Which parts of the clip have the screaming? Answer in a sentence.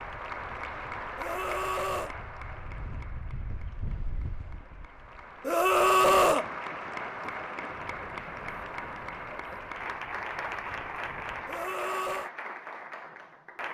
The screaming can be heard from 1.1 to 2.1 s, from 5.5 to 6.5 s and from 11.4 to 12.3 s.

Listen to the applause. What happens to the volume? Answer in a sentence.
The loudness of the applause goes down, then up.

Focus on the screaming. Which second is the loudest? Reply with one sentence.
The volume of the screaming peaks at 6 seconds.